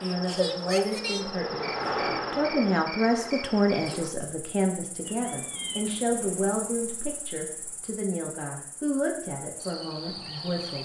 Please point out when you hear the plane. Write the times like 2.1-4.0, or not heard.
0.0-4.1.